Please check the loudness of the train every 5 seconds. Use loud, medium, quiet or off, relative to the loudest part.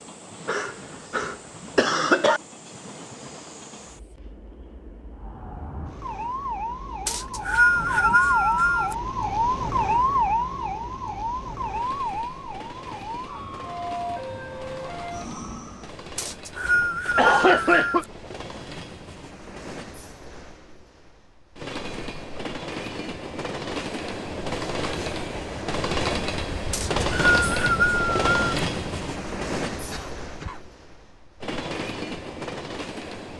quiet, quiet, quiet, quiet, medium, loud, medium.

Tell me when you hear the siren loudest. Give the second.
10 s.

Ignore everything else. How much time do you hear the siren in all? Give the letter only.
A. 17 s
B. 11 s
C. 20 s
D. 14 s
B.